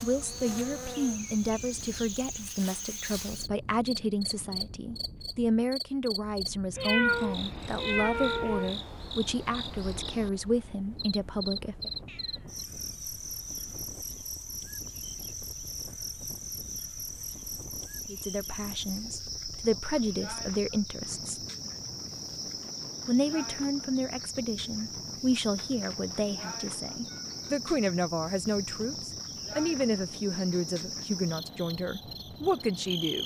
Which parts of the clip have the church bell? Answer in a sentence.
The church bell can't be heard in this clip.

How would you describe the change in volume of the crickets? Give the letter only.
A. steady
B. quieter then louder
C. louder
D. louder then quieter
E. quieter
A.